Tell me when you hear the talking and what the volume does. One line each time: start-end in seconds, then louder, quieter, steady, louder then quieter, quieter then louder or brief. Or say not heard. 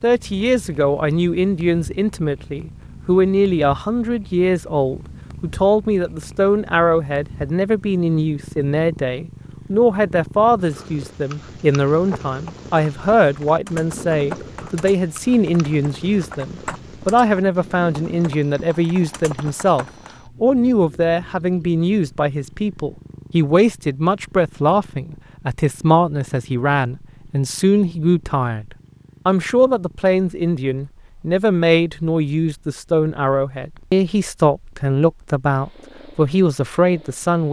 0.0-37.4 steady.